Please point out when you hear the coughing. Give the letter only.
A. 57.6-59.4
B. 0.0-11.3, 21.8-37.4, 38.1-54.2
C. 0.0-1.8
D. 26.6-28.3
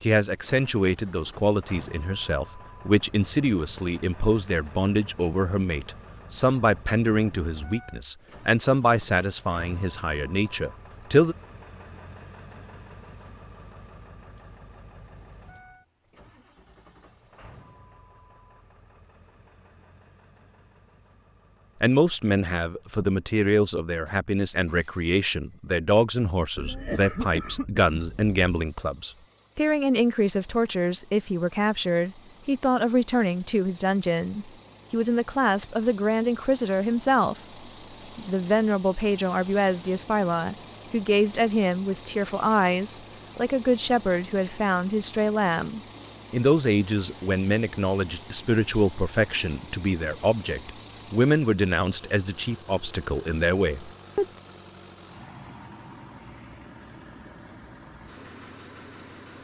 D.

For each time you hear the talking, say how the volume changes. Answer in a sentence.
The talking can be heard from 0.0 to 11.3 s, at a steady volume; from 21.8 to 37.4 s, at a steady volume; and from 38.1 to 54.2 s, at a steady volume.